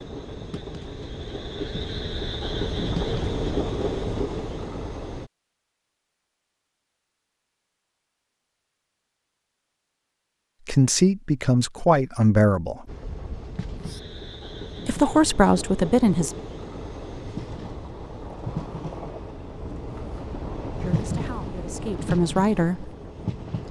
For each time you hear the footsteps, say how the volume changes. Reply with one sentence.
You can't hear the footsteps here.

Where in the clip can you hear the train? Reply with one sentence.
You can hear the train from 0.0 to 5.3 s and from 12.8 to 23.6 s.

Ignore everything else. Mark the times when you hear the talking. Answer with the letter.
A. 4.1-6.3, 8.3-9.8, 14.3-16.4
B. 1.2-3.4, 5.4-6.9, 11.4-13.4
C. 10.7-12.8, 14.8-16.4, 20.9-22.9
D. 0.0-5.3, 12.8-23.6
C.